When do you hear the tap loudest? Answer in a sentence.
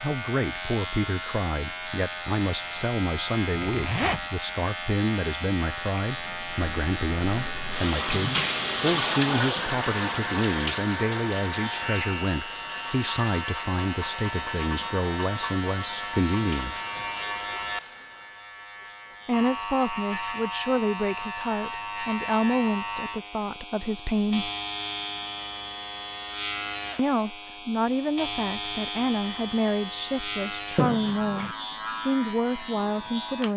The loudest moment of the tap is at 9 seconds.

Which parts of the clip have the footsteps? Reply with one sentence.
You can't hear the footsteps here.